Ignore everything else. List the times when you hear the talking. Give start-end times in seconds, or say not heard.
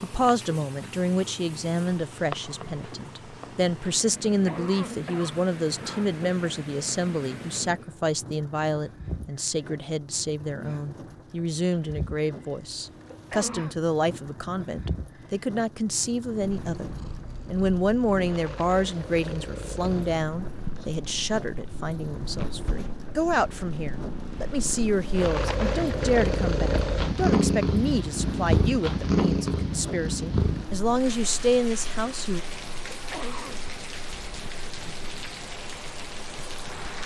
0.0-16.9, 17.5-32.4.